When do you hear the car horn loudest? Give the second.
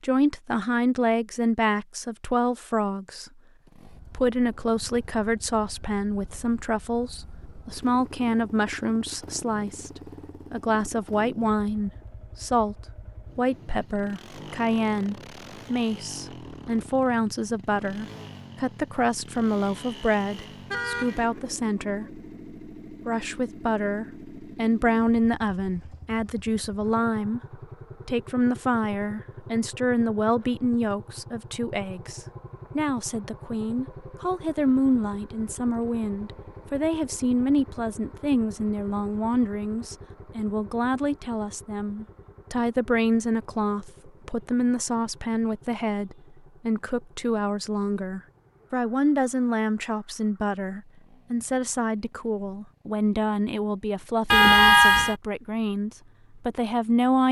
55 s.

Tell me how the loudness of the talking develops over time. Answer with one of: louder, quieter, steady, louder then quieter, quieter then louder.
steady.